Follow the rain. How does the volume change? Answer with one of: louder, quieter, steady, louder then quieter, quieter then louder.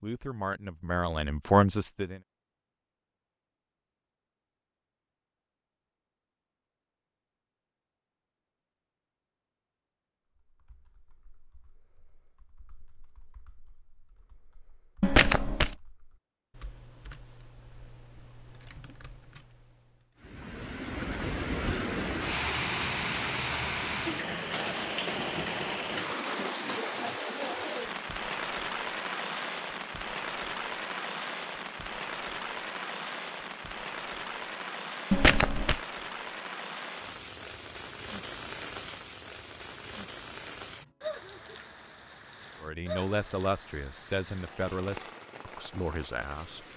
quieter.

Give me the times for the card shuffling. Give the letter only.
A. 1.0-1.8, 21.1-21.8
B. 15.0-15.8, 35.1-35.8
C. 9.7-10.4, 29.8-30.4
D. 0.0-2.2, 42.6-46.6
B.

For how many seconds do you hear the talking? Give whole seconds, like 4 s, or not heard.
6 s.